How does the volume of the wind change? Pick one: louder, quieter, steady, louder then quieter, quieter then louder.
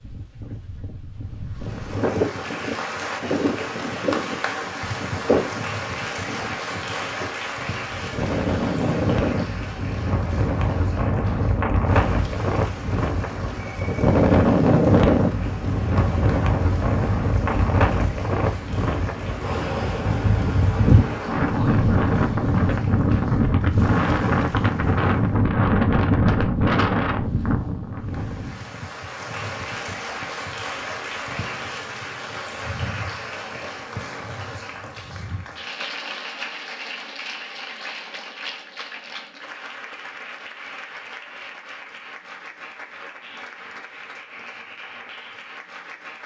louder.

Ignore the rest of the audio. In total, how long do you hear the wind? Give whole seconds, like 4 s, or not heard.
29 s.